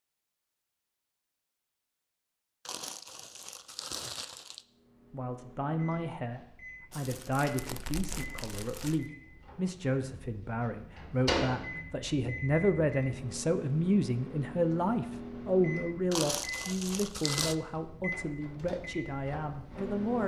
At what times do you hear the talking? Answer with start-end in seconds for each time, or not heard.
5.1-20.2.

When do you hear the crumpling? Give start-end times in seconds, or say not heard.
2.6-4.7, 6.9-9.1, 16.1-17.6.